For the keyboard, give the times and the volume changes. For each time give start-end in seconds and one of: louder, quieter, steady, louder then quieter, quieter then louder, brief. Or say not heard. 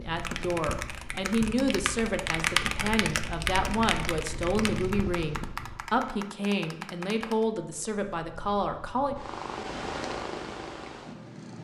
0.1-7.5 louder then quieter.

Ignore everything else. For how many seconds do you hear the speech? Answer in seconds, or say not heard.
9 s.